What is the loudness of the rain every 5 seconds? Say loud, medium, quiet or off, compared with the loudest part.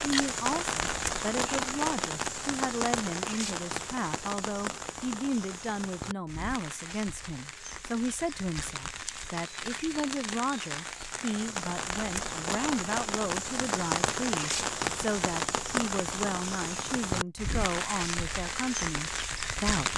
loud, medium, loud, loud.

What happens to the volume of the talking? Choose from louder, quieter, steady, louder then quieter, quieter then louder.
steady.